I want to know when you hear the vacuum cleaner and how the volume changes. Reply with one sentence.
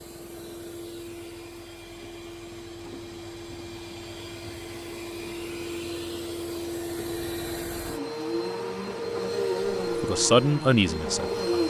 The vacuum cleaner can be heard from 0.0 to 11.6 s, getting louder.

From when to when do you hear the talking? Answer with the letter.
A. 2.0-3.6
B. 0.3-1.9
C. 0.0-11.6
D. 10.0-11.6
D.